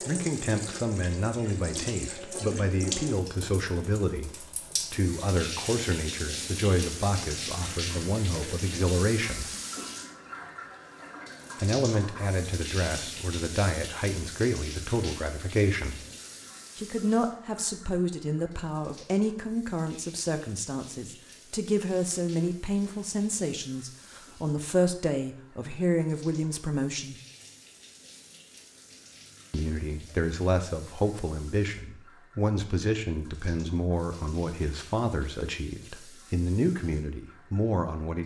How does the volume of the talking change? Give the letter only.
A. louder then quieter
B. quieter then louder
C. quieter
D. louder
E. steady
E.